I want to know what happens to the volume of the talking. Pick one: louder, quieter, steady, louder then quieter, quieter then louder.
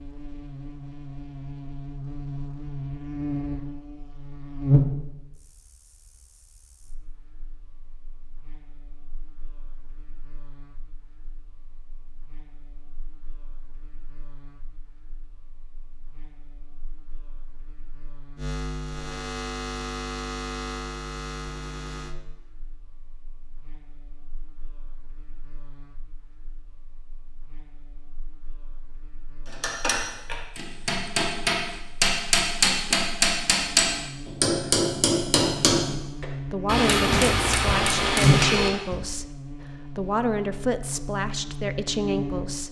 quieter then louder.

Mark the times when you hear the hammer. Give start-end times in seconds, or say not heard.
29.5-39.0.